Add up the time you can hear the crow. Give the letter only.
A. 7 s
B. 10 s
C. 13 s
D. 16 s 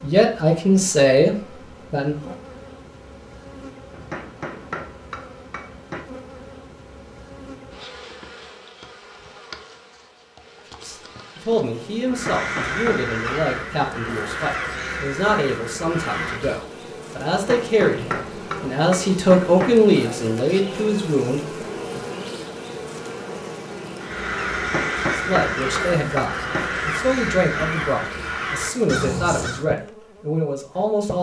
B.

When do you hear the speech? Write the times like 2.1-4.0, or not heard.
0.0-2.3, 10.8-22.0, 25.1-31.1.